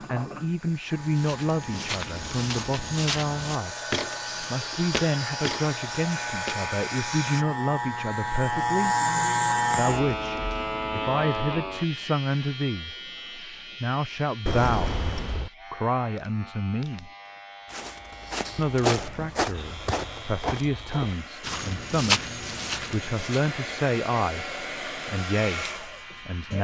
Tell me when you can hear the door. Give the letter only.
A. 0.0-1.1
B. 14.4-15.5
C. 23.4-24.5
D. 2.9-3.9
B.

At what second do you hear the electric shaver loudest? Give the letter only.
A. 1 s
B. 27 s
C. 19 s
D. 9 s
D.